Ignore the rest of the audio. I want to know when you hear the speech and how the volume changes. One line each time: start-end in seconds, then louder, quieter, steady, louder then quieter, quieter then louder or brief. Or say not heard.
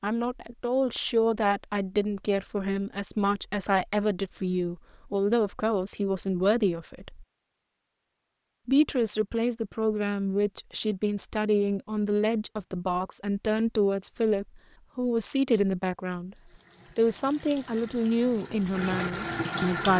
0.0-7.2 steady
8.7-16.4 steady
16.9-19.9 brief.